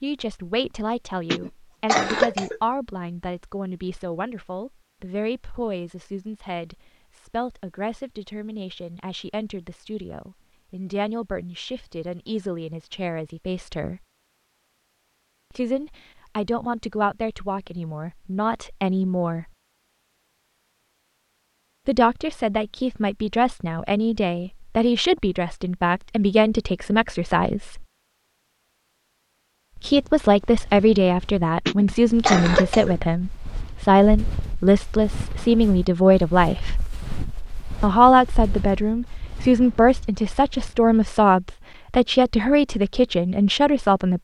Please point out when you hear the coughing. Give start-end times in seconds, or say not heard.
1.3-2.6, 31.6-33.0.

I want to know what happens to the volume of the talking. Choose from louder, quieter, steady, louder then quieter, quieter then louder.
louder.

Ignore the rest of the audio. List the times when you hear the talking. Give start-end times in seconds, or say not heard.
0.0-14.0, 15.5-19.5, 21.9-27.9, 29.8-36.9, 37.8-44.1.